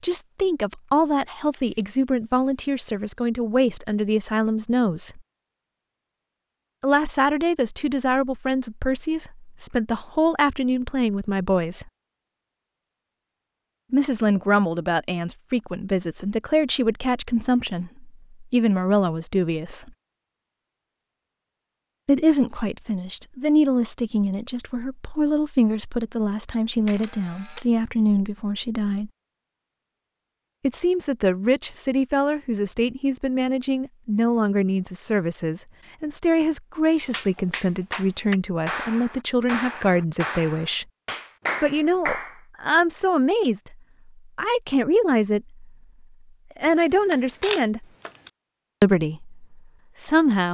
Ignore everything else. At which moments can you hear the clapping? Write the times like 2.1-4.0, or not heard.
37.1-42.4.